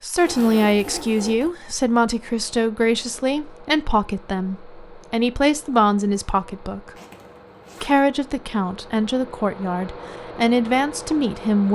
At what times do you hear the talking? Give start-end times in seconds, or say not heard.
0.0-6.9, 7.8-11.6.